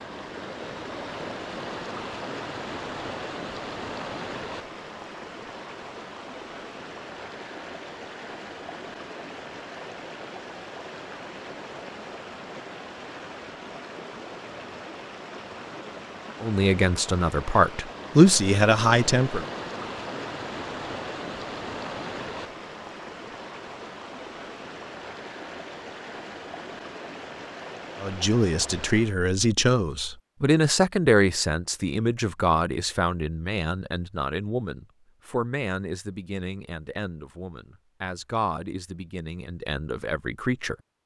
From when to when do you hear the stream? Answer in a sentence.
The stream can be heard from 0.0 to 29.1 s.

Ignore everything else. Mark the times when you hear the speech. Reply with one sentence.
You can hear the speech from 16.4 to 19.4 s and from 28.0 to 40.8 s.